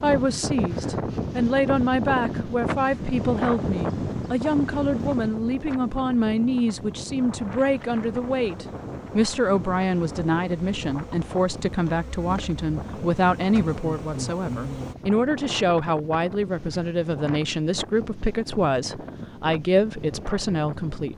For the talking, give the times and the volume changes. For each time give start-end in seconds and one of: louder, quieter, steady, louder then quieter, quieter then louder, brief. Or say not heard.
0.0-21.1 steady.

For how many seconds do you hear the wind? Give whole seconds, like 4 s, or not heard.
21 s.